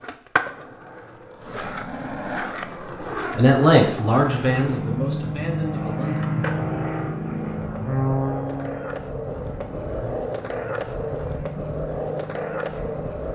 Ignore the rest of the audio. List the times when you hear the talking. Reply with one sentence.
You can hear the talking from 3.4 to 6.2 s.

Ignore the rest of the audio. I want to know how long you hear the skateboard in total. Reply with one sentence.
The skateboard can be heard for 13 seconds in total.